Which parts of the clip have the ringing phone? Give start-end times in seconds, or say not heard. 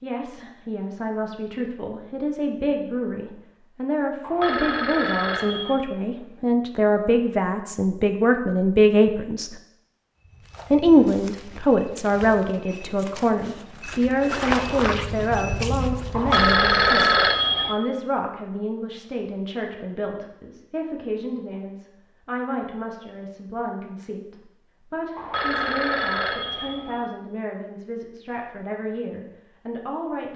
4.2-5.8, 16.1-17.8, 25.1-27.1.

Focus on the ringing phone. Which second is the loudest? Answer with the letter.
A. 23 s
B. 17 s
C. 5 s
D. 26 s
B.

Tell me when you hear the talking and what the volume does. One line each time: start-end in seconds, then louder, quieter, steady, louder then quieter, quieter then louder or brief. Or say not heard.
0.0-9.5 louder
10.7-30.3 quieter.